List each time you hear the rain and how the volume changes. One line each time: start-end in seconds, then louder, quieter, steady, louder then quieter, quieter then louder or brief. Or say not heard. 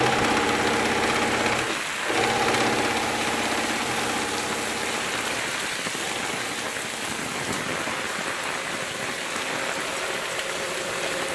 0.0-11.2 steady.